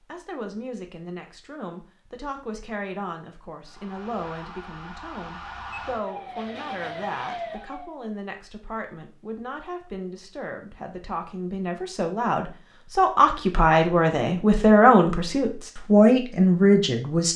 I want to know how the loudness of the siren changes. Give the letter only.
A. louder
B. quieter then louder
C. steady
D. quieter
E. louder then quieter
A.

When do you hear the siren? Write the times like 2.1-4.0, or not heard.
3.6-8.0.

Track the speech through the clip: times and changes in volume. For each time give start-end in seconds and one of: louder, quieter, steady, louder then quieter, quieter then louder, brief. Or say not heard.
0.1-17.3 louder.